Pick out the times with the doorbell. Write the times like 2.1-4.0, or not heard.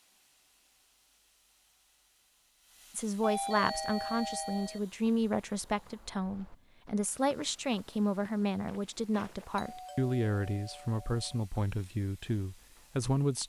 3.2-4.8, 9.6-11.4.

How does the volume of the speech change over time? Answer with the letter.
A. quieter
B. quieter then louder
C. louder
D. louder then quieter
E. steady
E.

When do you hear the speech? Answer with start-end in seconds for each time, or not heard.
3.0-13.4.